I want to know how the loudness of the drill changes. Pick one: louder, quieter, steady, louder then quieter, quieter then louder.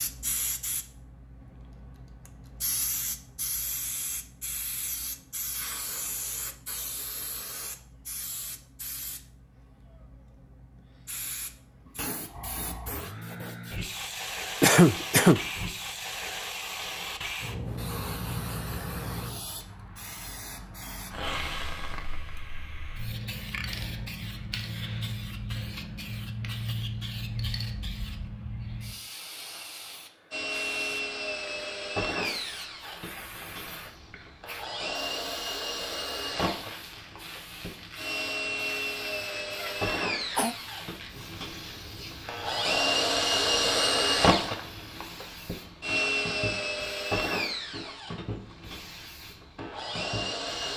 louder then quieter.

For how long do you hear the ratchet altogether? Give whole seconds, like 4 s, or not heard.
not heard.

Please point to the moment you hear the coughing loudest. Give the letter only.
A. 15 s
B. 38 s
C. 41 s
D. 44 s
A.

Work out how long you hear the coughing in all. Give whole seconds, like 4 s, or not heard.
2 s.